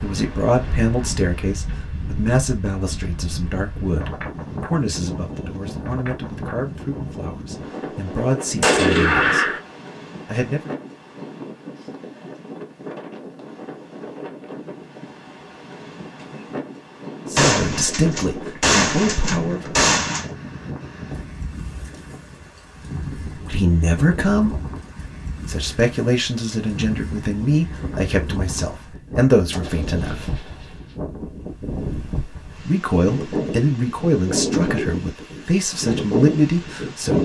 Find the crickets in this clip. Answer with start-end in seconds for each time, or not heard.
not heard.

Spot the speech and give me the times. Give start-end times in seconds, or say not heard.
0.0-9.5, 10.2-10.7, 17.3-19.8, 23.3-24.6, 25.4-30.4, 32.5-37.1.